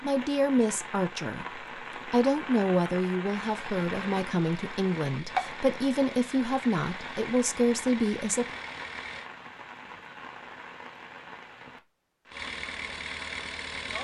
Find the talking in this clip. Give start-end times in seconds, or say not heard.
0.0-8.4.